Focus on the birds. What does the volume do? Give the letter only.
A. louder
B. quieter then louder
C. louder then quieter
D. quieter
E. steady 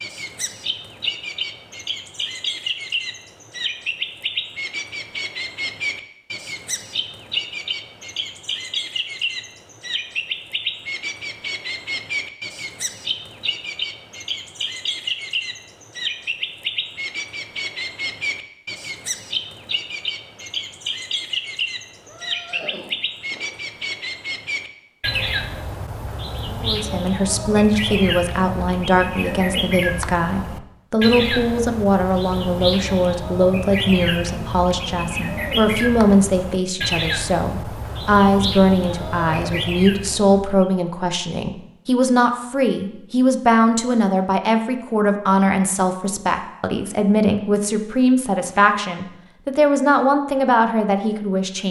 E.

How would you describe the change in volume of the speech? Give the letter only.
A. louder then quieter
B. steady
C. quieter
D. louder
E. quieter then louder
B.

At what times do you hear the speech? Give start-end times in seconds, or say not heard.
26.6-51.6.